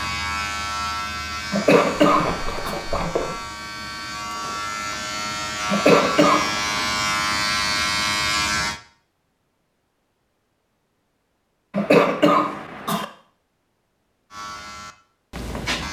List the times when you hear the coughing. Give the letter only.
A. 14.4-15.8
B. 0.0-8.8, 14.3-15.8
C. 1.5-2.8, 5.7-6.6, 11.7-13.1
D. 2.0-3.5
C.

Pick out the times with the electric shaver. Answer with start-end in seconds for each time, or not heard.
0.0-8.8, 14.3-15.8.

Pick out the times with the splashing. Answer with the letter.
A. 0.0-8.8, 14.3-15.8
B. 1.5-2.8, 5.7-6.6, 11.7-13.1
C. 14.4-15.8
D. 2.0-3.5
D.